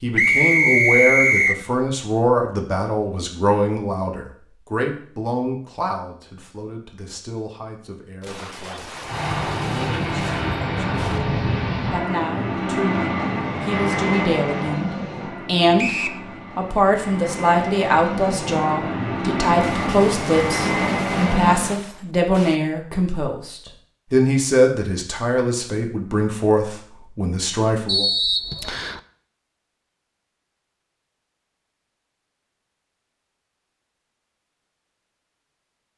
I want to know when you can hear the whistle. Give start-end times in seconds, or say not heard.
0.1-1.6, 15.8-16.2, 27.9-29.0.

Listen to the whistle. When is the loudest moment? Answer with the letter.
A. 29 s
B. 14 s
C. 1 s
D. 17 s
C.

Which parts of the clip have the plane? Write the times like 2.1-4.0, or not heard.
9.0-21.8.